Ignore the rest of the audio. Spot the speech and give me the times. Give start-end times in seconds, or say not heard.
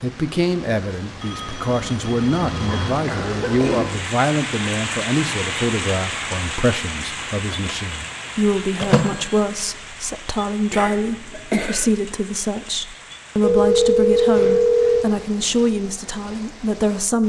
0.0-17.2.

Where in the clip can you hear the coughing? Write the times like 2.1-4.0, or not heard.
2.6-3.9, 10.7-11.8.